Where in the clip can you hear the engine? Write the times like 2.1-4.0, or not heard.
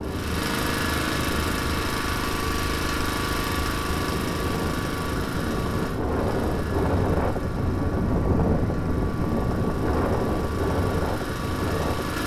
0.0-12.2.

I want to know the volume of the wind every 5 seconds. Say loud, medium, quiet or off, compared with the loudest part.
medium, loud, loud.